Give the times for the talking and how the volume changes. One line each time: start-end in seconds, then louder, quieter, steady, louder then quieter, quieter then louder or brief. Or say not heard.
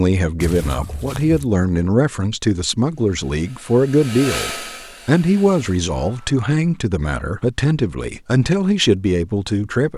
0.0-9.9 steady.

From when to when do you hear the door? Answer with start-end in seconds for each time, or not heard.
not heard.